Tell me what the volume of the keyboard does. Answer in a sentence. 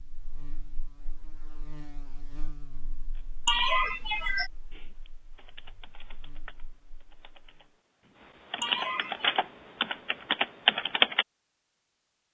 The loudness of the keyboard goes up.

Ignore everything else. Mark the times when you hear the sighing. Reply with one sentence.
The sighing can be heard from 3.5 to 4.5 s and from 8.6 to 9.4 s.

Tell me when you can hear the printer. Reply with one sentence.
You can't hear the printer here.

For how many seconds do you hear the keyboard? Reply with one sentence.
The keyboard can be heard for 8 seconds in total.